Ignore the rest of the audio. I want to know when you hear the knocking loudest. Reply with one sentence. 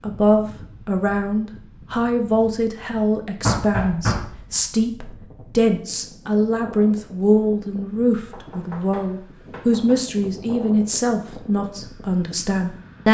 The loudest moment of the knocking is at 4 seconds.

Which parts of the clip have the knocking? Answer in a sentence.
The knocking can be heard from 3.4 to 4.5 s and from 8.2 to 10.1 s.